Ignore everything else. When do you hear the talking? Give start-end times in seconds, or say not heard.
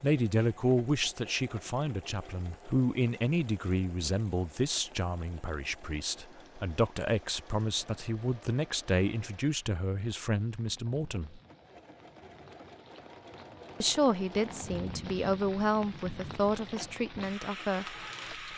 0.0-11.4, 13.8-18.5.